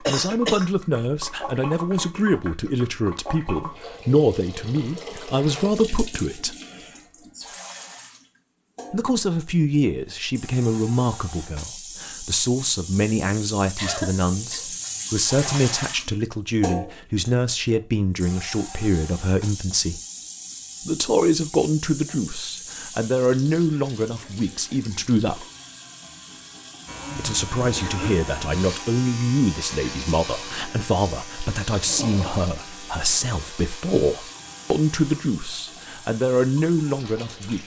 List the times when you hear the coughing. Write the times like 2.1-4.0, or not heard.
0.1-0.7, 13.8-14.7, 27.8-28.2.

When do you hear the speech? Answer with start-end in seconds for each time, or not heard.
0.1-6.5, 8.9-20.0, 20.9-25.4, 27.1-37.6.